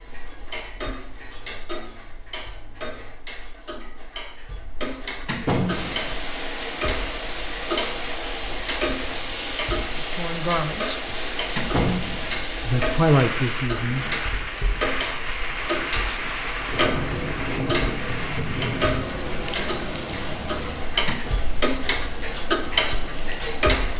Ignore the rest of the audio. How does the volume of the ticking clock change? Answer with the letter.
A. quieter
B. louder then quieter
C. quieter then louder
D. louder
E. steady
D.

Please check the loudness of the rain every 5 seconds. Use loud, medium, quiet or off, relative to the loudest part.
off, loud, loud, loud, medium.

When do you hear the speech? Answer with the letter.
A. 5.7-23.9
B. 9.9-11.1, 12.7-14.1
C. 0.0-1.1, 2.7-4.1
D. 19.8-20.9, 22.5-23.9
B.